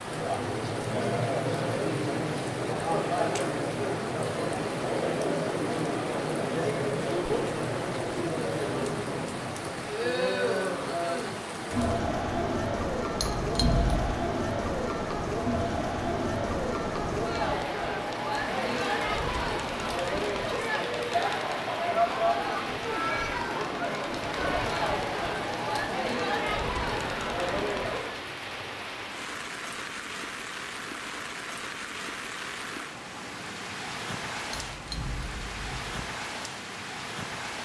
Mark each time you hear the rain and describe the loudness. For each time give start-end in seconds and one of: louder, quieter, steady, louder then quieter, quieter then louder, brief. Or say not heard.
0.0-37.6 steady.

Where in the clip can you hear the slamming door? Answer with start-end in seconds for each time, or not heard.
not heard.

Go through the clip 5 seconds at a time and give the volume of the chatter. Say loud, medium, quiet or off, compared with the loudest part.
loud, loud, loud, loud, loud, loud, off, off.